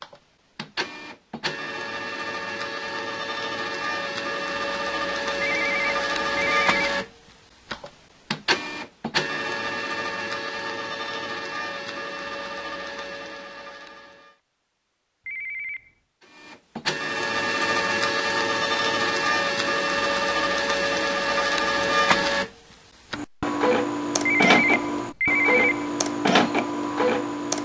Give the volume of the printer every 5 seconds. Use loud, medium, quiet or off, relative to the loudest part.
medium, loud, medium, loud, loud, loud.